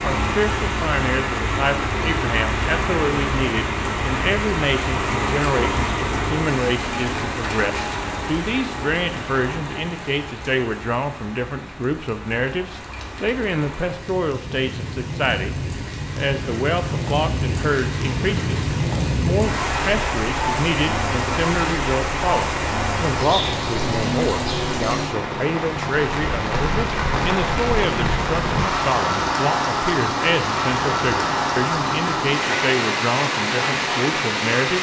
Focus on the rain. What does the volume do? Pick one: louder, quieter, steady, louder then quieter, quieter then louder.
quieter then louder.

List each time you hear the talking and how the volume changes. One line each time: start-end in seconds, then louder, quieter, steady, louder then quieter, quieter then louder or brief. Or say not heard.
0.0-15.6 steady
16.1-34.7 steady.